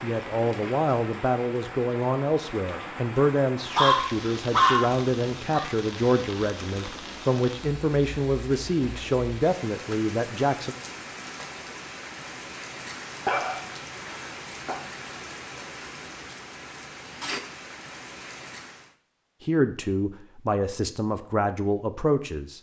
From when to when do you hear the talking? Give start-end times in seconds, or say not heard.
0.0-10.8, 19.4-22.5.